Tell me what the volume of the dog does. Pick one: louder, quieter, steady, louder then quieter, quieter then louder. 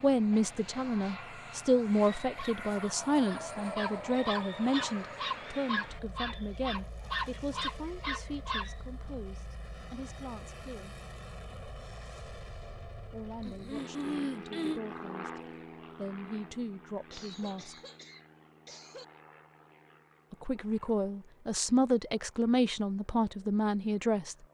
louder.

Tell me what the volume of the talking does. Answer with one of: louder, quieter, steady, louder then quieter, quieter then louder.
quieter then louder.